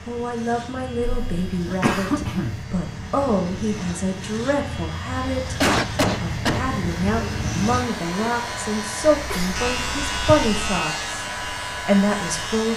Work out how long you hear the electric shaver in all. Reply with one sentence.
The electric shaver can be heard for 13 seconds in total.